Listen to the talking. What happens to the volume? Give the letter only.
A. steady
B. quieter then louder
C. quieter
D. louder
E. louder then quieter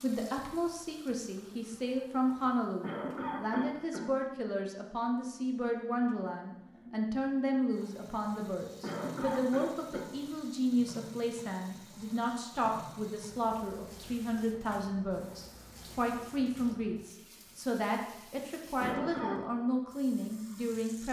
A.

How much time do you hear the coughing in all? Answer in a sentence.
You can hear the coughing for 3 seconds altogether.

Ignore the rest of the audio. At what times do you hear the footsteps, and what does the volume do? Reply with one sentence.
The footsteps can't be heard in this clip.